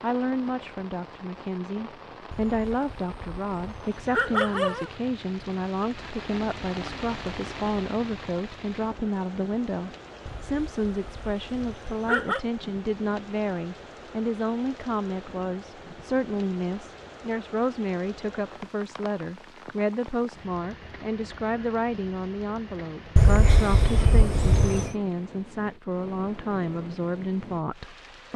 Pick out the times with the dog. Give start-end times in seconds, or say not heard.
2.3-5.0, 10.2-12.4, 23.1-24.9.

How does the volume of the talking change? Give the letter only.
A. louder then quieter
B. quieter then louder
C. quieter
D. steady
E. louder
D.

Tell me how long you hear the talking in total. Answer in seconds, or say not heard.
28 s.